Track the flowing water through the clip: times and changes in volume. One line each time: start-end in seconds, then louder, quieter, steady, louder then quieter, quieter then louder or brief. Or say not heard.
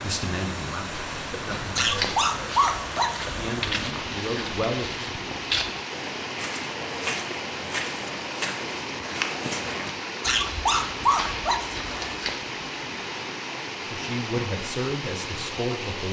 0.0-16.0 steady.